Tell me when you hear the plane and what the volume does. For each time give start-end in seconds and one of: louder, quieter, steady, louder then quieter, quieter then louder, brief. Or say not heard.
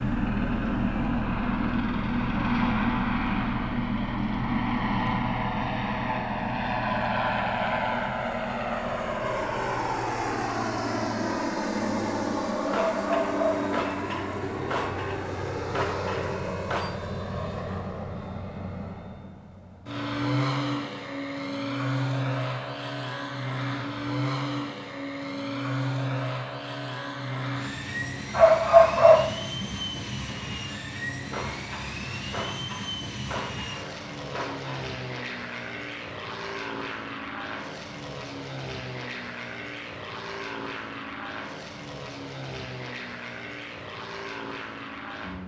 0.0-45.4 quieter.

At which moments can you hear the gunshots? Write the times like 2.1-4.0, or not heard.
12.7-16.9, 31.3-34.9.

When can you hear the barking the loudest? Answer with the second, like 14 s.
29 s.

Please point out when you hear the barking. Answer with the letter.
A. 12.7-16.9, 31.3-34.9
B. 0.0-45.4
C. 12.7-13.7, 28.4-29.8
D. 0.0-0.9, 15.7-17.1
C.